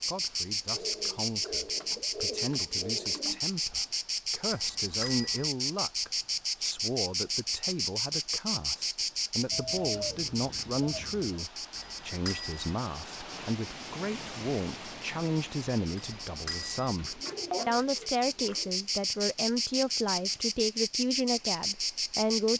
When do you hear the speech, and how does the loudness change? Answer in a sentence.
You can hear the speech from 0.1 to 22.5 s, getting louder.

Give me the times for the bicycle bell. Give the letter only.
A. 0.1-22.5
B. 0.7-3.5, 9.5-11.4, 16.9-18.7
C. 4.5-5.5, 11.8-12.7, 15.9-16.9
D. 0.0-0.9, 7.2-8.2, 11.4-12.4
C.